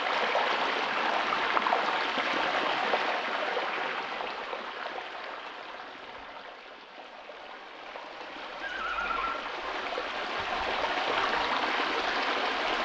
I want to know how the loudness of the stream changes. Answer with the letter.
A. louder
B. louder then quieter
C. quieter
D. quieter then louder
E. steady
D.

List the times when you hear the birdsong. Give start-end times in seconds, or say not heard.
not heard.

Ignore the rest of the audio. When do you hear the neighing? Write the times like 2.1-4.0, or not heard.
8.6-9.3.